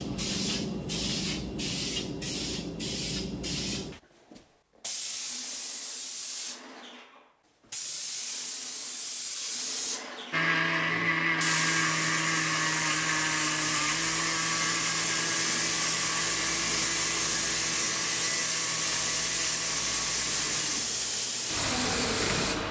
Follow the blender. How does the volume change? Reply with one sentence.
The loudness of the blender goes down.